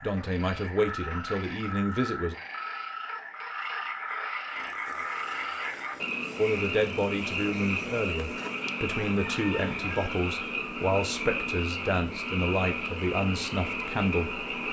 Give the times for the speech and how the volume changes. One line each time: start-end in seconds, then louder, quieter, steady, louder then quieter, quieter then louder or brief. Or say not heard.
0.0-2.4 brief
6.3-14.4 steady.